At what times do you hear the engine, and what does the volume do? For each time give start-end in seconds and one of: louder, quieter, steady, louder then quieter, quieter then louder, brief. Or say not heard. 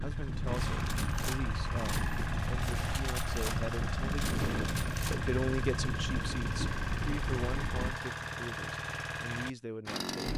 0.0-10.3 steady.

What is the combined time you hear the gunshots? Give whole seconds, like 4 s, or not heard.
5 s.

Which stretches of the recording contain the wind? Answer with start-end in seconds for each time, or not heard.
0.0-8.0.